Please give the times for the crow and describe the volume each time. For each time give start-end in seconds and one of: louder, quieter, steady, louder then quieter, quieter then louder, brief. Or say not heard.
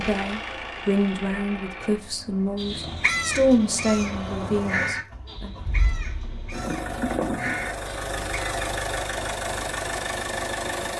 2.5-8.6 quieter then louder.